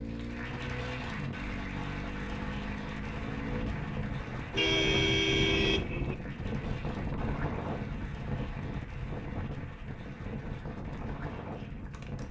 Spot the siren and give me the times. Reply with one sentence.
You can't hear the siren here.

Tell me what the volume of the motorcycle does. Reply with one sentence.
The volume of the motorcycle stays about the same.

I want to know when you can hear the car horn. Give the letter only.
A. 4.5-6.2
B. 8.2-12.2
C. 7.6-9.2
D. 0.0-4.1
A.